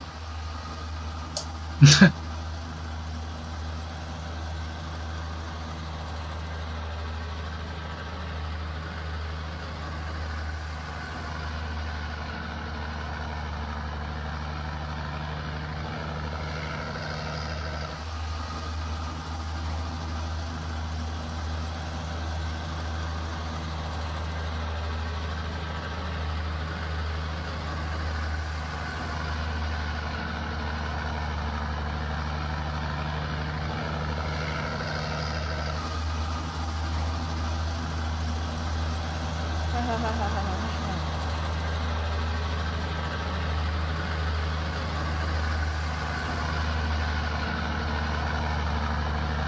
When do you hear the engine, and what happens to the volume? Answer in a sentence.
You can hear the engine from 0.0 to 49.4 s, getting louder.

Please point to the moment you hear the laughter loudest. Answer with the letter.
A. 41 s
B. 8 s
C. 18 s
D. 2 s
D.